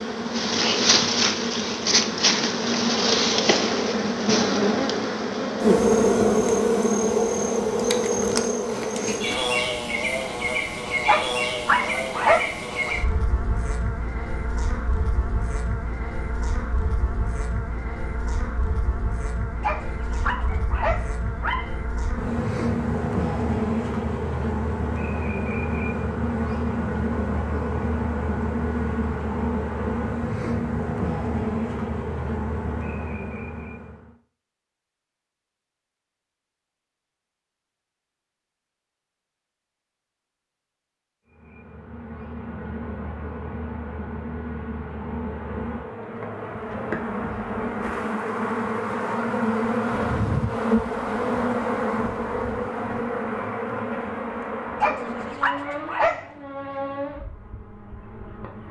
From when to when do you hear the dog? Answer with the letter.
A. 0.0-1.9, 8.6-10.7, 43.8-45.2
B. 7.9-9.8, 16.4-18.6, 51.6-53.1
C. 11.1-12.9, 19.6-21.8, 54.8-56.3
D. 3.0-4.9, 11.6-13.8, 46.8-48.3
C.